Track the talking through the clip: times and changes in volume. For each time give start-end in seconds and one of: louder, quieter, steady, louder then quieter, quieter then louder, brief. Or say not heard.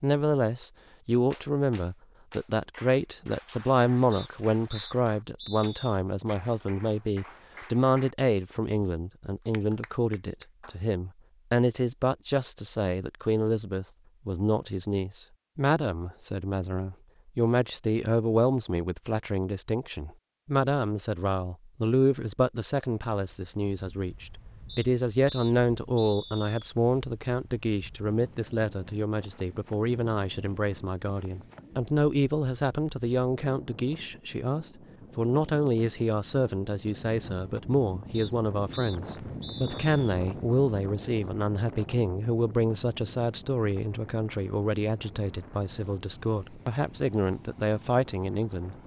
0.0-48.8 steady.